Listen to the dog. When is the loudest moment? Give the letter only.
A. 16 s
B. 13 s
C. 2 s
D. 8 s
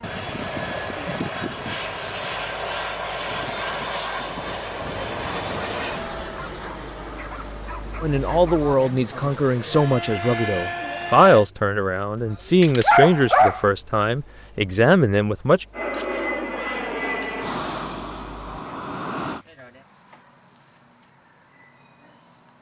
B.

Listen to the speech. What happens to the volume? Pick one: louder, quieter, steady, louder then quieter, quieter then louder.
steady.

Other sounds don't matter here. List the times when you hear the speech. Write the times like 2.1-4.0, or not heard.
8.0-15.7.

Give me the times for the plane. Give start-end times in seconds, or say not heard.
0.0-11.4, 15.7-19.4.